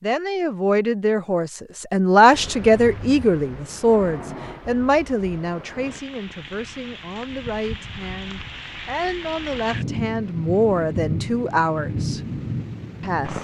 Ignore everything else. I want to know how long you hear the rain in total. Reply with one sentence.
You can hear the rain for 11 seconds altogether.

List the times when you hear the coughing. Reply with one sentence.
The coughing can't be heard in this clip.